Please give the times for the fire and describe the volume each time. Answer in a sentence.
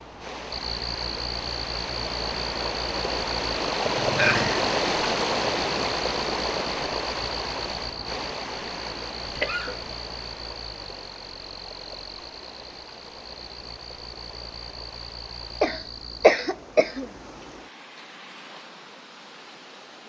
The fire can't be heard in this clip.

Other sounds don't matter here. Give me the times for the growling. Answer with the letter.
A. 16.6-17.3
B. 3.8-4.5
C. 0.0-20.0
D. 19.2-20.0
B.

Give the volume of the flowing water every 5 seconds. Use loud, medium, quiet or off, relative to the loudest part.
loud, loud, quiet, quiet.